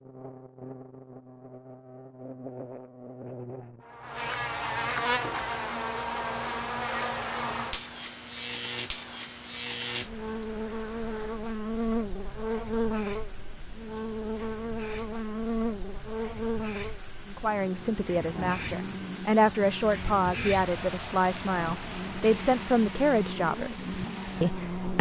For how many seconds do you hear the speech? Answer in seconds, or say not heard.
8 s.